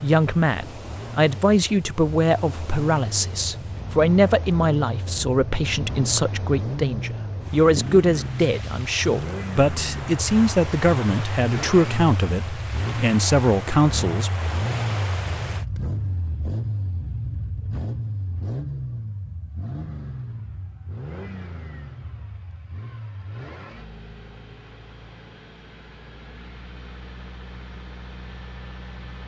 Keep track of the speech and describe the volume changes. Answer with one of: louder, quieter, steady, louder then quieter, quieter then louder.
steady.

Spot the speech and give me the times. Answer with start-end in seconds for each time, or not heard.
0.0-14.3.